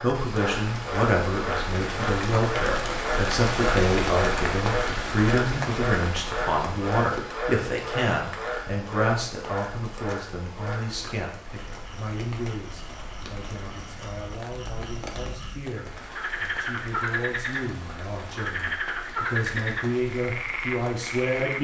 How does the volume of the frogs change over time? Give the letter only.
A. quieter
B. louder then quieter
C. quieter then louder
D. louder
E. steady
C.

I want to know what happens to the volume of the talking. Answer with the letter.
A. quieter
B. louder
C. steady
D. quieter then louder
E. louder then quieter
D.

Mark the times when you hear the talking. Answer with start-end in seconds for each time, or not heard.
0.0-21.5.